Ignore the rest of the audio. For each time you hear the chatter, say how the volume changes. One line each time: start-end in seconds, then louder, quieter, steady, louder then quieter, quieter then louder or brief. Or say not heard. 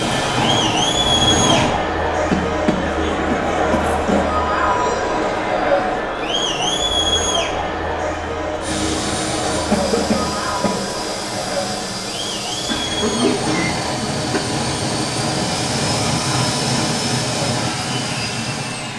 0.0-18.9 quieter.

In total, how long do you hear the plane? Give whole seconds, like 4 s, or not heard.
12 s.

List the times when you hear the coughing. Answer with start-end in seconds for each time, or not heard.
2.3-4.2, 9.7-10.8, 12.7-14.4.